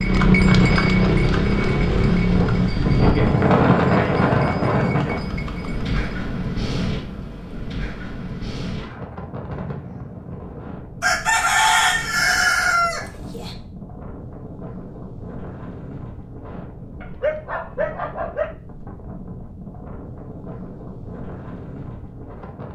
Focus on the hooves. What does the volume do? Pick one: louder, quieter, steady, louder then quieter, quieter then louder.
quieter.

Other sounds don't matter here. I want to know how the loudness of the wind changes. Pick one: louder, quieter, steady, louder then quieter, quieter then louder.
quieter.